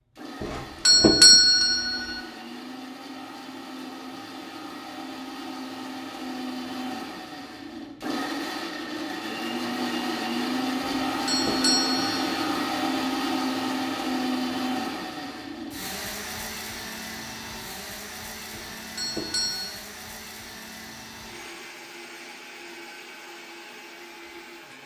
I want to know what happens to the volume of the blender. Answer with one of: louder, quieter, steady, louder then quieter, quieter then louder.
louder then quieter.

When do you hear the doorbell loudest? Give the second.
1 s.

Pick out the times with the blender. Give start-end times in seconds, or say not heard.
0.1-24.8.